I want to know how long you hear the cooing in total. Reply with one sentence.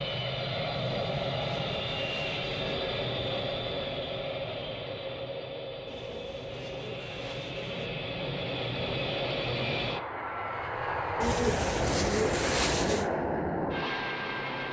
The cooing can be heard for 6 seconds in total.